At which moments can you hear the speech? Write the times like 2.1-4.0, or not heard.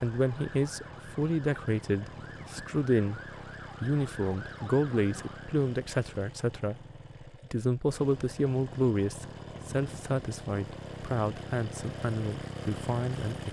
0.0-3.2, 3.8-6.8, 7.5-13.4.